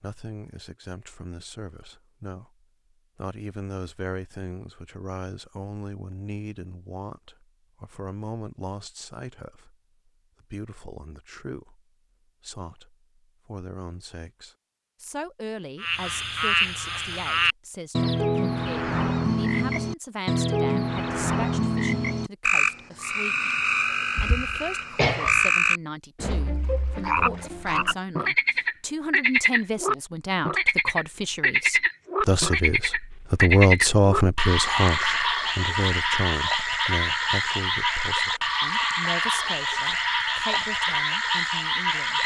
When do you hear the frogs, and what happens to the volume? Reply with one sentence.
You can hear the frogs from 15.8 to 42.2 s, at a steady volume.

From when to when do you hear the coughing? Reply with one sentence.
The coughing can be heard from 24.1 to 25.4 s.